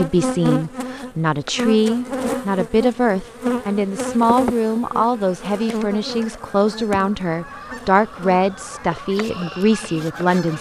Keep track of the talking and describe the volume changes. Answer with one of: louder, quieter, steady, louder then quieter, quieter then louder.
steady.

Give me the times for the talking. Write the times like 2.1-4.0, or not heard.
0.0-10.5.